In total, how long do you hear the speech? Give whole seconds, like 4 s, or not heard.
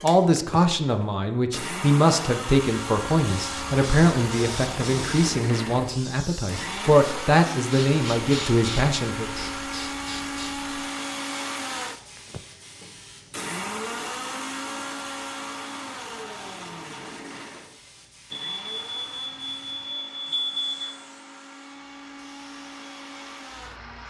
9 s.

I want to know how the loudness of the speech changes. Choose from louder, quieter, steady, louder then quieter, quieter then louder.
steady.